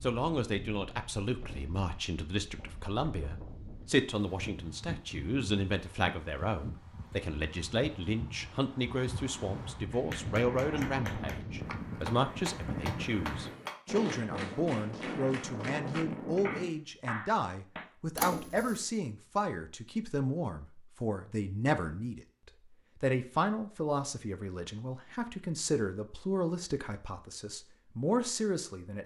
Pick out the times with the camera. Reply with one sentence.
You can hear the camera from 18.1 to 18.9 s.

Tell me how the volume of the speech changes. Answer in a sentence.
The volume of the speech stays about the same.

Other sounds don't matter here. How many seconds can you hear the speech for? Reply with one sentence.
The speech can be heard for 29 seconds in total.